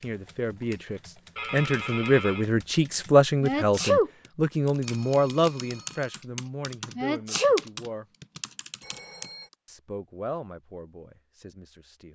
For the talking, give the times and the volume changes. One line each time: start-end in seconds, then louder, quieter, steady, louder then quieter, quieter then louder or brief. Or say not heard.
0.0-8.1 louder then quieter
9.7-12.1 brief.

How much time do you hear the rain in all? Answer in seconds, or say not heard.
not heard.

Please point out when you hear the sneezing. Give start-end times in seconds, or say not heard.
3.4-4.1, 7.0-7.6.